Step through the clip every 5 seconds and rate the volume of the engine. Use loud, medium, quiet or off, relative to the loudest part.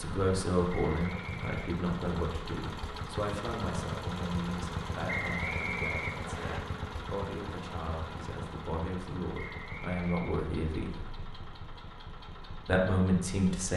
loud, loud, medium.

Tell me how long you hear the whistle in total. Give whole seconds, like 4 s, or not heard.
4 s.